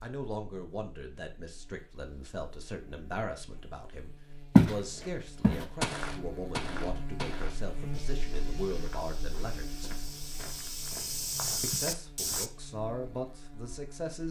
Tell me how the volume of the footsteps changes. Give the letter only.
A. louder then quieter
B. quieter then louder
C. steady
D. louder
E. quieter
B.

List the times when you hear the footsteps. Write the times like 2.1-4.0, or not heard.
4.5-12.5.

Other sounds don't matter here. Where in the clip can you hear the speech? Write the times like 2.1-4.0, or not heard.
0.0-9.9, 11.6-14.2.